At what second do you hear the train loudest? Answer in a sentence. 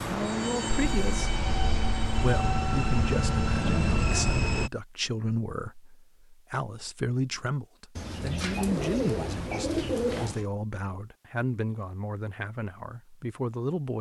The volume of the train peaks at 4 seconds.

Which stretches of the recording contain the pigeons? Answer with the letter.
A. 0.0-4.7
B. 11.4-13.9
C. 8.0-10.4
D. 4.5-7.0
C.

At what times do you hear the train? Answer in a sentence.
The train can be heard from 0.0 to 4.7 s.